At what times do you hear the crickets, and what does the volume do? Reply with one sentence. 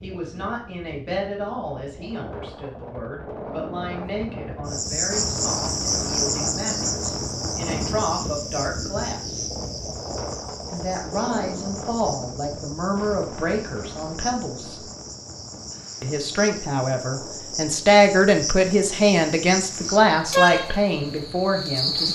You can hear the crickets from 4.7 to 22.0 s, getting quieter then louder.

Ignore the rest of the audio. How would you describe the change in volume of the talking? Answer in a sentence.
The volume of the talking goes up.